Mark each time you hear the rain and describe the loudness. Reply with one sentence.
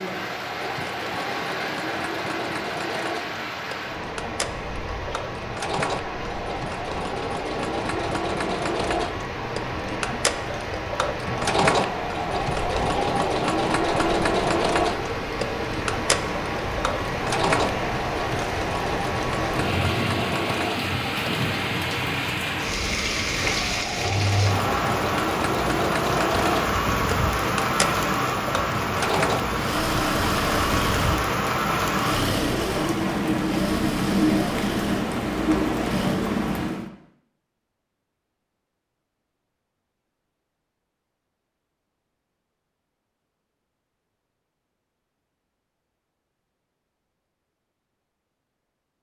You can hear the rain from 0.0 to 36.9 s, getting louder.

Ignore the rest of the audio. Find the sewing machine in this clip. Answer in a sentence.
You can hear the sewing machine from 0.0 to 21.4 s and from 23.4 to 36.2 s.